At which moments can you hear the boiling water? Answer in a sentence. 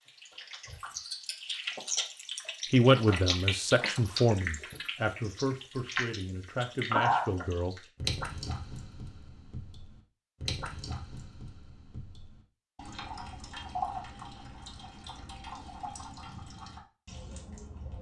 You can't hear the boiling water here.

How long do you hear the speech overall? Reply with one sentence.
You can hear the speech for 5 seconds altogether.